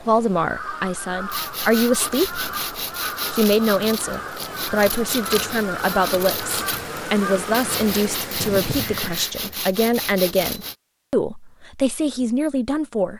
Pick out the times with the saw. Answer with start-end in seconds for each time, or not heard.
1.3-10.8.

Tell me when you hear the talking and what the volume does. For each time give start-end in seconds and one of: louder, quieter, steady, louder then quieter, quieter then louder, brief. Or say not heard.
0.0-2.4 brief
3.3-13.1 steady.